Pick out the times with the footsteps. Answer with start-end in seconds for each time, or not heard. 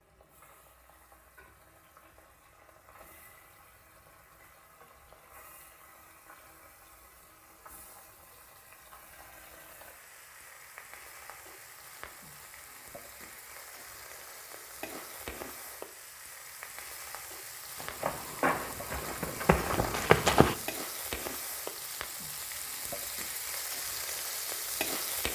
17.8-20.6.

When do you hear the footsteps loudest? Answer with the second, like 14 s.
20 s.